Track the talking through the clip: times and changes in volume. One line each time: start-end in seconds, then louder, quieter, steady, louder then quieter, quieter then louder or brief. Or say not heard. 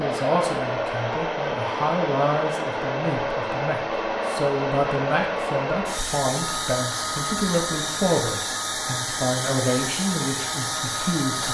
0.0-11.4 steady.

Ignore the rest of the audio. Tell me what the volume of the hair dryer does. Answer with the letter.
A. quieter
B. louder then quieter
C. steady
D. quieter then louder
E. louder
C.